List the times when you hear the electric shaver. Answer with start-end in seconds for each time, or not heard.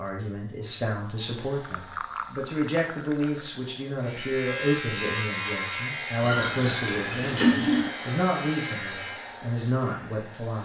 4.0-9.4.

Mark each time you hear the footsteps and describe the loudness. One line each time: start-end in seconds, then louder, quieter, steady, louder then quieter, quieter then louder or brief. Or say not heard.
not heard.